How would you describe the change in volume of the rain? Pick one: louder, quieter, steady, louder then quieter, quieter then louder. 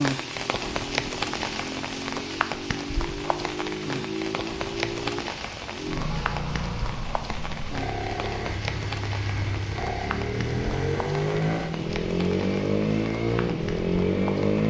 quieter.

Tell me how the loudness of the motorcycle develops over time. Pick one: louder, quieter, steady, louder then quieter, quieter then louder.
louder.